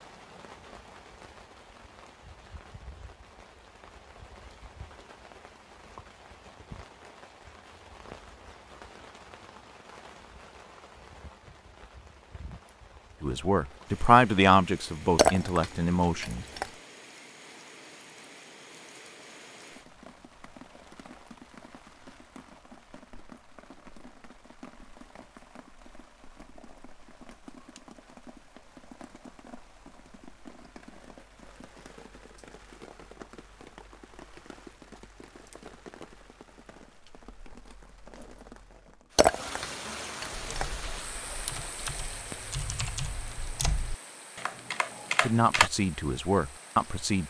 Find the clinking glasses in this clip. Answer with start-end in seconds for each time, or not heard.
15.2-16.7, 39.1-40.6.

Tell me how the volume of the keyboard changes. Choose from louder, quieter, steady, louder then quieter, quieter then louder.
louder.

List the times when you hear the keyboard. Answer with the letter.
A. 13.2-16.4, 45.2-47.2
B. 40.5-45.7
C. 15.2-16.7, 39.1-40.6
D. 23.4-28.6
B.